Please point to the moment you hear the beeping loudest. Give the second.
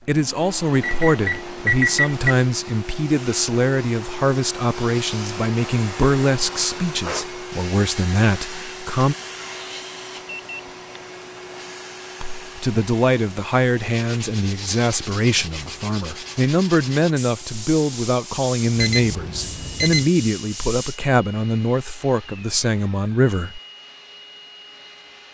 2 s.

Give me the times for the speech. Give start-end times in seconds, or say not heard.
0.1-9.2, 12.2-23.6.